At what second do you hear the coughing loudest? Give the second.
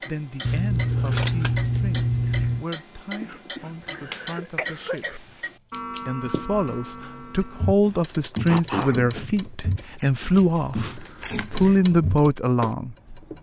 9 s.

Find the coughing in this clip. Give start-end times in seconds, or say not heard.
3.2-5.2, 8.4-9.0.